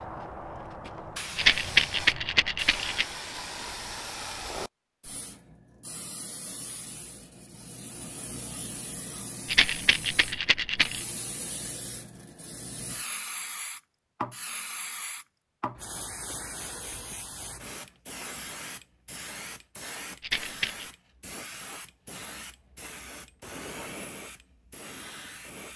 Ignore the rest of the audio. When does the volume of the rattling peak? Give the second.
2 s.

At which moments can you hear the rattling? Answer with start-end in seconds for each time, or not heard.
1.4-3.0, 9.4-11.0, 20.2-20.9.